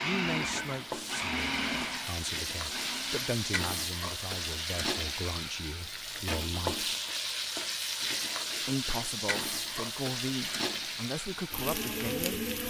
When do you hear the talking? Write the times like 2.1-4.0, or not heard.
0.0-6.9, 8.7-12.6.